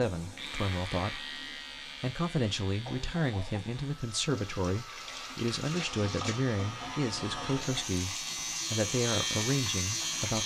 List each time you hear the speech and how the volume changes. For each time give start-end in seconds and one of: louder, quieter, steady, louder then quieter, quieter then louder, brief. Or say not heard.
0.0-1.2 brief
2.0-10.4 steady.